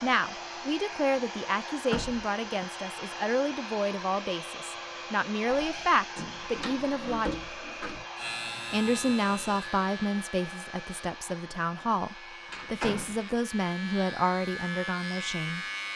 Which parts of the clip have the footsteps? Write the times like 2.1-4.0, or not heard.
not heard.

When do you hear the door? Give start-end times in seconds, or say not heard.
1.9-2.6, 5.5-8.1, 12.5-13.2.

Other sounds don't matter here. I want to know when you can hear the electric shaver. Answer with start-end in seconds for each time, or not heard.
8.2-15.9.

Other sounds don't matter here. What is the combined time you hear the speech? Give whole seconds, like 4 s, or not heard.
14 s.